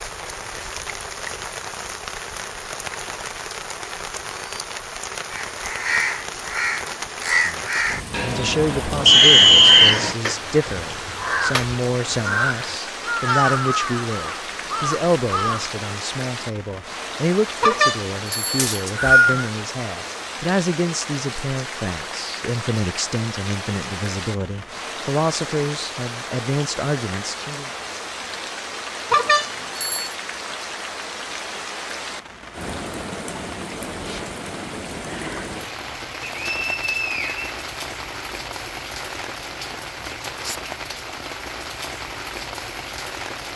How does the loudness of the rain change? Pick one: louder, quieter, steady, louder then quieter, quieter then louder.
steady.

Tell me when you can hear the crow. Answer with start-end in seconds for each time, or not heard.
5.3-15.8.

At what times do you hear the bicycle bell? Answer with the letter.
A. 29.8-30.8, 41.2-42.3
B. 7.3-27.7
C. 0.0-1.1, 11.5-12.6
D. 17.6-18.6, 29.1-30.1
D.